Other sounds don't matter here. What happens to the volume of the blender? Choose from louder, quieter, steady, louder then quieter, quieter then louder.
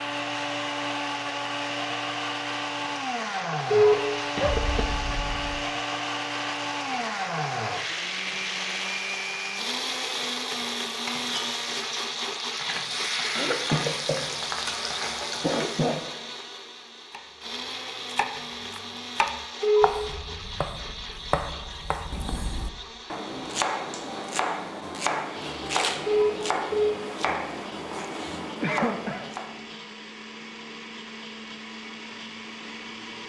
quieter.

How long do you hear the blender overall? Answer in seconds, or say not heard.
33 s.